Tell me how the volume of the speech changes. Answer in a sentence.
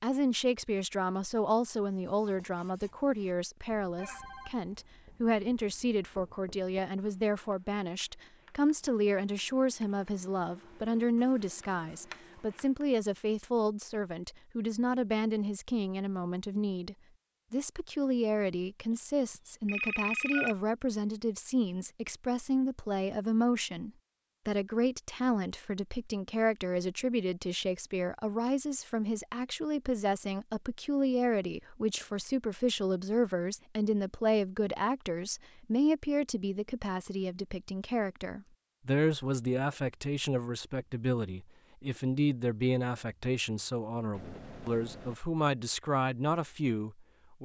The volume of the speech stays about the same.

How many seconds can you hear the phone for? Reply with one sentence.
The phone can be heard for 3 seconds in total.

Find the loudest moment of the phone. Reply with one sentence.
The loudest moment of the phone is at 20 seconds.